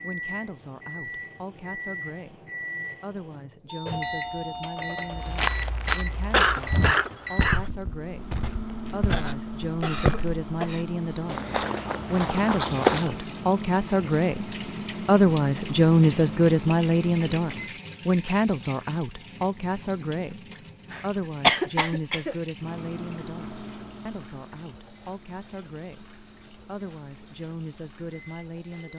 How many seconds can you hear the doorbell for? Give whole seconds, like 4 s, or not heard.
2 s.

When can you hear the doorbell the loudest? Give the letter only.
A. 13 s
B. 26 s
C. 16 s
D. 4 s
D.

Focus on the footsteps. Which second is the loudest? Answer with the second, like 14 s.
13 s.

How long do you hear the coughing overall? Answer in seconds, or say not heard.
4 s.